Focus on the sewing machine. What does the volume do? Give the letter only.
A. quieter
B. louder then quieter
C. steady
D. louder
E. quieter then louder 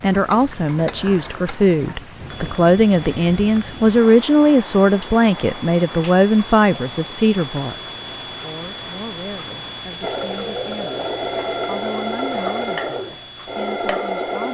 C.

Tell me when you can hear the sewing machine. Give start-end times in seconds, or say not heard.
10.0-14.4.